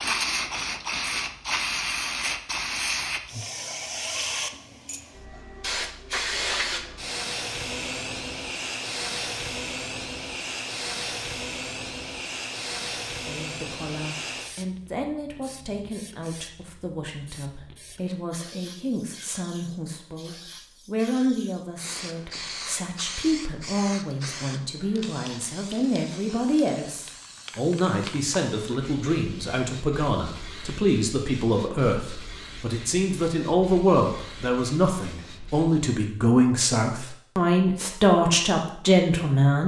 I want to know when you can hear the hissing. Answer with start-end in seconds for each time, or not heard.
0.0-35.9.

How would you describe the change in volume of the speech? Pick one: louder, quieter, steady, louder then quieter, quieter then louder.
louder.